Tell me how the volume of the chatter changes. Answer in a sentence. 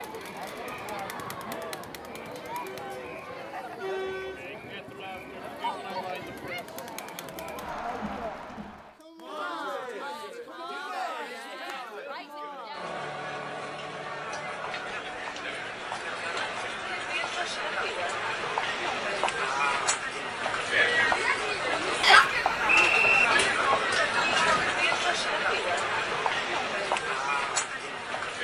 The loudness of the chatter goes up.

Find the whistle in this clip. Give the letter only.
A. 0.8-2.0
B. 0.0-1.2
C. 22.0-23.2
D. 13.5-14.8
C.